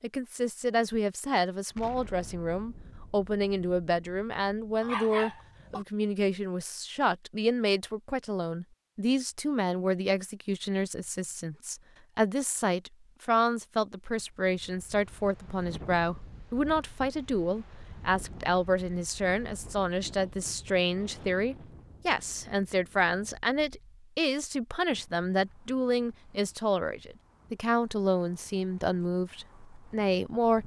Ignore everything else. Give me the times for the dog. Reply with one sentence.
You can hear the dog from 4.8 to 5.8 s.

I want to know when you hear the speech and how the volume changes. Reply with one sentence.
You can hear the speech from 0.0 to 30.6 s, at a steady volume.